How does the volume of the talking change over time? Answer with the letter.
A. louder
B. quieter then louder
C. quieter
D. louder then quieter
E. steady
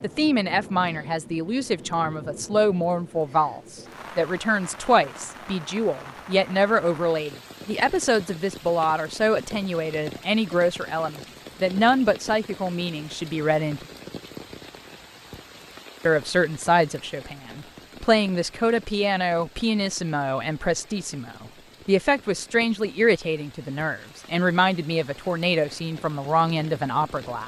E.